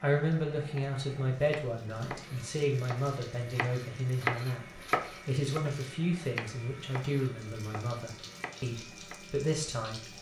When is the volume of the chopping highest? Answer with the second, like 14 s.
4 s.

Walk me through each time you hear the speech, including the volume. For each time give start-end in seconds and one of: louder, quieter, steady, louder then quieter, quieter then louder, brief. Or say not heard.
0.0-10.0 steady.